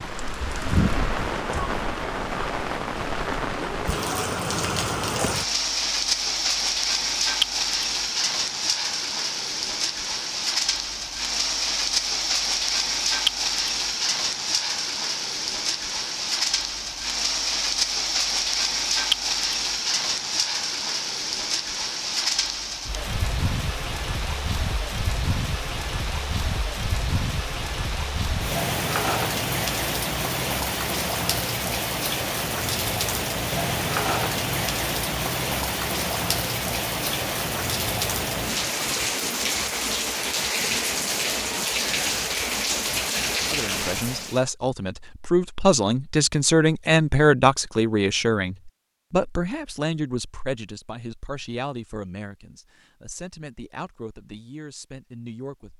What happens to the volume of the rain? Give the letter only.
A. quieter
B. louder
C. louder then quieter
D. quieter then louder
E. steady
E.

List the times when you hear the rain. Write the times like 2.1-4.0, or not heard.
0.0-44.4.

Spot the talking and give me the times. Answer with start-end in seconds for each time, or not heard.
43.5-55.7.